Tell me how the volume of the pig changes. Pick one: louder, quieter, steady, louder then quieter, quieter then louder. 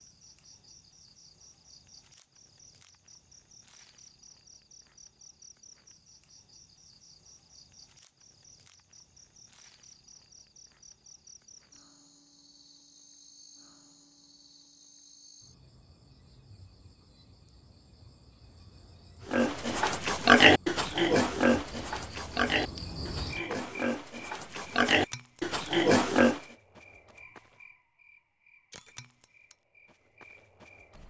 quieter then louder.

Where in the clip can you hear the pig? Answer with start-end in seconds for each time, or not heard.
19.3-26.4.